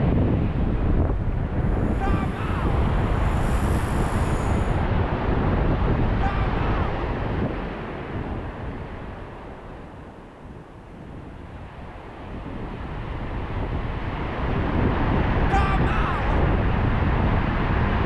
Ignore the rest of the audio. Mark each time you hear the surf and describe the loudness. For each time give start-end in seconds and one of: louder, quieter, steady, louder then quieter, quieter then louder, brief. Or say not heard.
0.0-18.0 quieter then louder.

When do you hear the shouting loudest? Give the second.
16 s.